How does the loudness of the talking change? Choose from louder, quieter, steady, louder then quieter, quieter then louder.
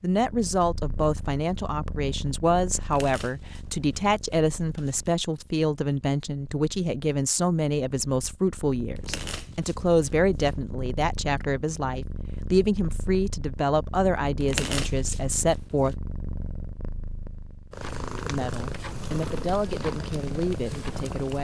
steady.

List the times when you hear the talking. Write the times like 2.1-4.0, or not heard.
0.0-15.9, 18.2-21.3.